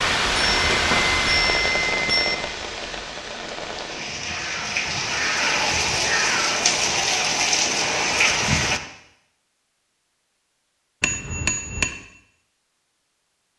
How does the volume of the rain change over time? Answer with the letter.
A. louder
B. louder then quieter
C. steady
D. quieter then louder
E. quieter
D.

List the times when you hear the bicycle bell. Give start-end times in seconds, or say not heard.
0.3-2.4, 11.0-11.9.